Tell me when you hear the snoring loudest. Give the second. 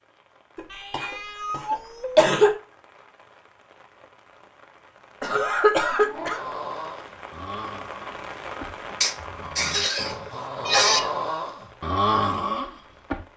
12 s.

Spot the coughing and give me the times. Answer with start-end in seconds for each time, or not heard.
0.6-2.5, 5.2-6.5, 9.0-11.0.